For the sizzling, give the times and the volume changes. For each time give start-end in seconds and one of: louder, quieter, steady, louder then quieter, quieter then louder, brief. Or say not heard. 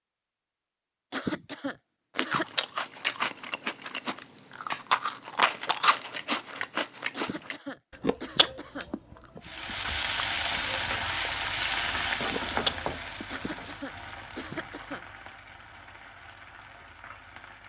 9.4-17.6 quieter.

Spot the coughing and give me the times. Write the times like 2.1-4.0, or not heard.
1.1-2.5, 7.1-8.9, 13.3-15.1.